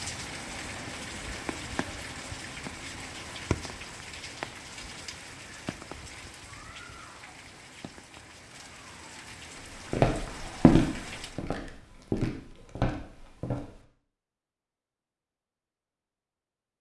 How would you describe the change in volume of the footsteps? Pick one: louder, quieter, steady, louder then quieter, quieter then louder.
quieter then louder.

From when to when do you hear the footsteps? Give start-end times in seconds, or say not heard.
9.7-13.8.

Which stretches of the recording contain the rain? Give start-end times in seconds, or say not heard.
0.0-11.4.